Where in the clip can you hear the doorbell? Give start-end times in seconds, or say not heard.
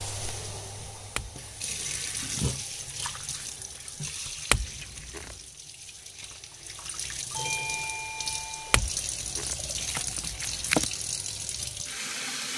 7.3-8.8.